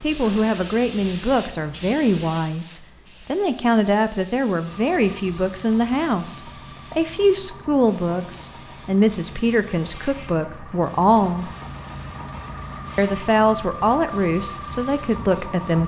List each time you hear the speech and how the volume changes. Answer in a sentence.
You can hear the speech from 0.0 to 11.5 s, at a steady volume; and briefly from 12.9 to 15.8 s.